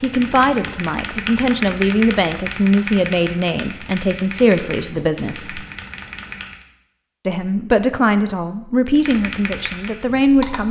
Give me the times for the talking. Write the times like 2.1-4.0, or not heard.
0.0-5.6, 7.2-10.6.